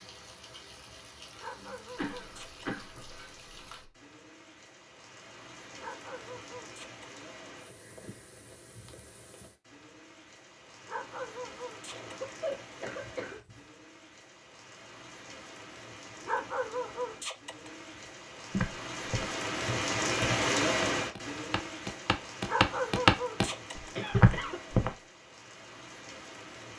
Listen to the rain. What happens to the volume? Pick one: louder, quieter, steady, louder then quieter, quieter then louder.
louder then quieter.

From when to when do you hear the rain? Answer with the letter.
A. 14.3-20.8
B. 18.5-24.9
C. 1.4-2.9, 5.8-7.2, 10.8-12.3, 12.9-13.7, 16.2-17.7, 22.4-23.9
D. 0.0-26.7
D.